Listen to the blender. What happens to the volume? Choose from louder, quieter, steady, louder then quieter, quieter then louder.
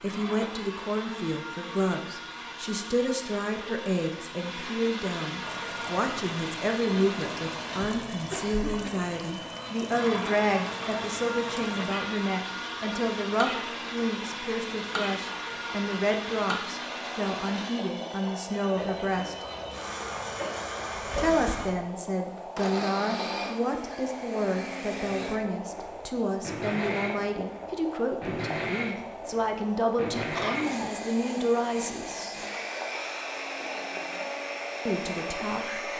steady.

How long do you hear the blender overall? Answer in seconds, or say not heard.
36 s.